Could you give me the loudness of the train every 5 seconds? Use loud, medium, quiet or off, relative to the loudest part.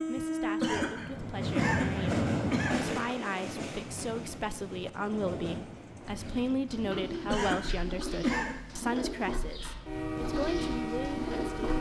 loud, medium, loud.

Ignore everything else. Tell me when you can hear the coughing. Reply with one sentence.
You can hear the coughing from 0.6 to 3.0 s and from 7.3 to 8.6 s.